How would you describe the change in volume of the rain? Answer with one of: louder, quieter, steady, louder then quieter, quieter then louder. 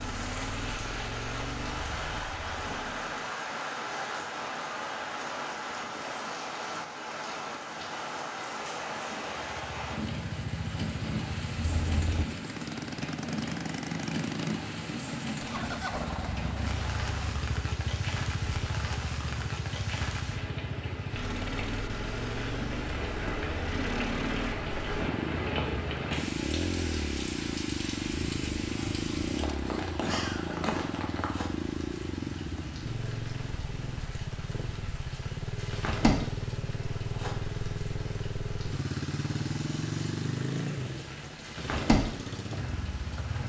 steady.